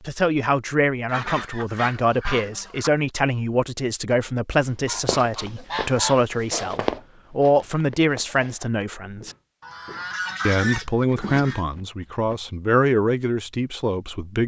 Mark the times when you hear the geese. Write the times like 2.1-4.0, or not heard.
1.1-2.9, 4.8-6.7, 9.6-11.7.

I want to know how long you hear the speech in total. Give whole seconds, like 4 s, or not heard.
13 s.